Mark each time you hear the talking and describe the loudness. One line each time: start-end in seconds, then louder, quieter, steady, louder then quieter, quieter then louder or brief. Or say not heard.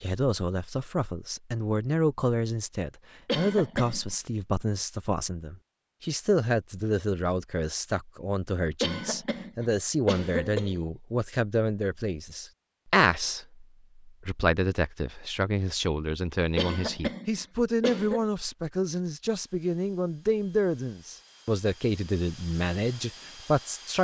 0.0-23.9 steady.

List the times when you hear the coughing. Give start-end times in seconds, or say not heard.
3.2-4.2, 8.8-10.8, 16.6-18.2.